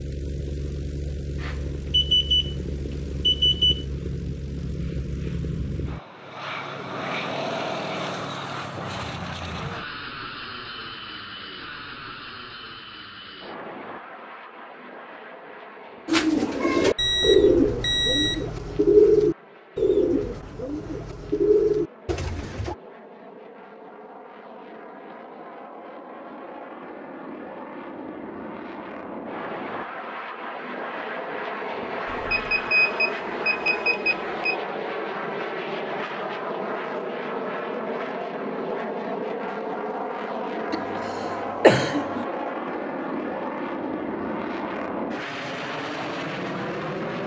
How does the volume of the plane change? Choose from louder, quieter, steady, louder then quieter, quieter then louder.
quieter then louder.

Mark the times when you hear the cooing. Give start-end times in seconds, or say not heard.
16.1-22.8.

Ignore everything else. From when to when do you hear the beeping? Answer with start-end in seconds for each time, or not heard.
1.4-2.5, 3.2-3.9, 16.9-18.4, 32.1-34.5.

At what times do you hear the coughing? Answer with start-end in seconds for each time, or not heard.
40.7-42.2.